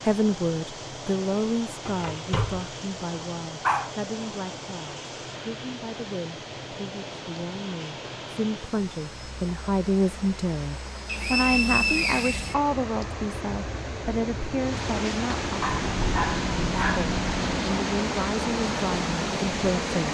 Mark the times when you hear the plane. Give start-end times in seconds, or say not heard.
0.0-20.0.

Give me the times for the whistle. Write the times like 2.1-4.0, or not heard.
11.1-13.1.